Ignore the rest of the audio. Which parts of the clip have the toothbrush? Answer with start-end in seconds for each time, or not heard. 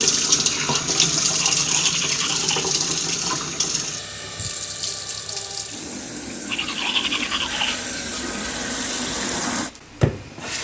1.4-2.6, 6.5-7.8.